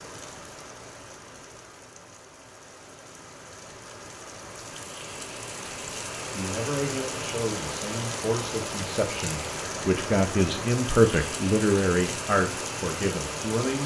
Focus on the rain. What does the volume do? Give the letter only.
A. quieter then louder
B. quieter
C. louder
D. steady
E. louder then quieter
C.